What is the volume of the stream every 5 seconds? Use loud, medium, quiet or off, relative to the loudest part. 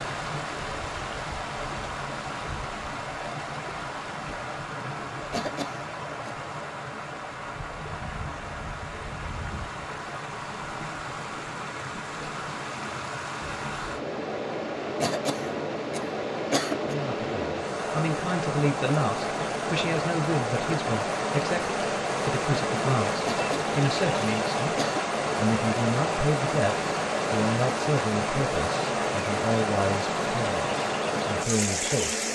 medium, medium, medium, loud, loud, loud, loud.